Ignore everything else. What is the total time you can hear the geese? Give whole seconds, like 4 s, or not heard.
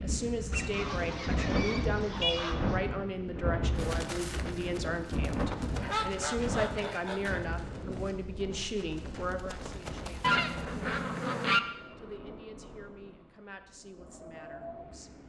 5 s.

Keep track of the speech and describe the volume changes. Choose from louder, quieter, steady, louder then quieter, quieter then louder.
quieter.